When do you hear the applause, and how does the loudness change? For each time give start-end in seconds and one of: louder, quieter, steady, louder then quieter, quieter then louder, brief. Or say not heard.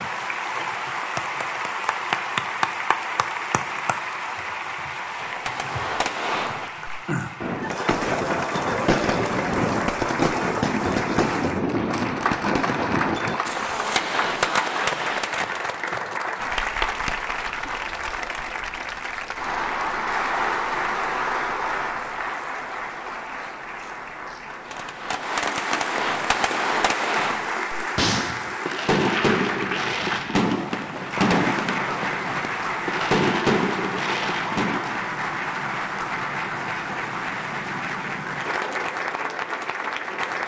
0.0-40.4 steady.